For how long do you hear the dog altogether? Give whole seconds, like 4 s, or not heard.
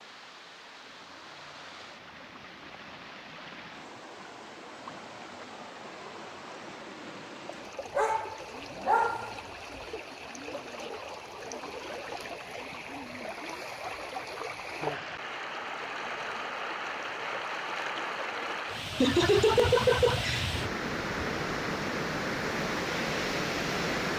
2 s.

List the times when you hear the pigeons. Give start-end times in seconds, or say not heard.
not heard.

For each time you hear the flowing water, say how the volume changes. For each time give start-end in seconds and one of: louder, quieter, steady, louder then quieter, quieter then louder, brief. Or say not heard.
0.0-24.1 louder.